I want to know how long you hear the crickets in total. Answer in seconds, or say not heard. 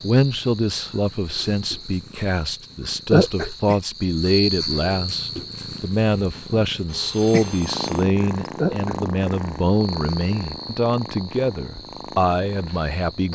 13 s.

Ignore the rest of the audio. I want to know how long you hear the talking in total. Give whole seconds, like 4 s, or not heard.
13 s.